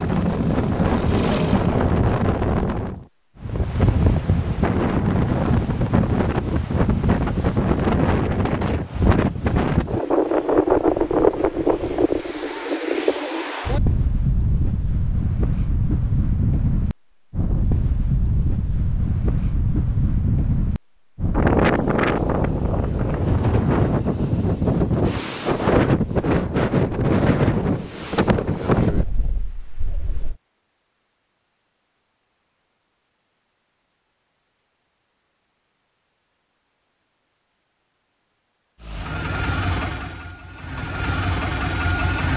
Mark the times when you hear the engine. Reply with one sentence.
You can hear the engine from 0.0 to 1.9 s and from 38.8 to 42.3 s.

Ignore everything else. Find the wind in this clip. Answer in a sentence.
The wind can be heard from 0.0 to 30.4 s.